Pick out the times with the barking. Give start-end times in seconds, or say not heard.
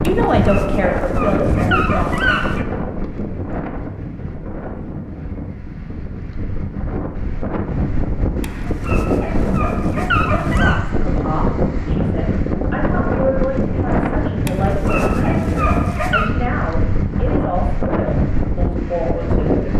0.1-2.6, 8.4-10.8, 14.4-16.4.